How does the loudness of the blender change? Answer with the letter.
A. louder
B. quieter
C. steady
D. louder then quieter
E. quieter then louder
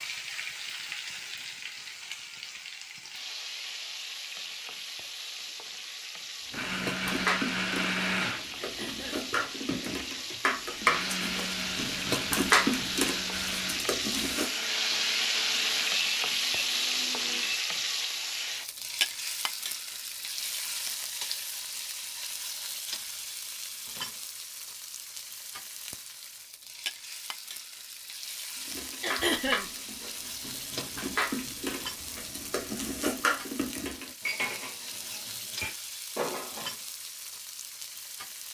B.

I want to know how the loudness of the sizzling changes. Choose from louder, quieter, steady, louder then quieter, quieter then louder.
louder then quieter.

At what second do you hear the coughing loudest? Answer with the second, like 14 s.
29 s.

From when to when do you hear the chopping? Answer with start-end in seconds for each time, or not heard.
not heard.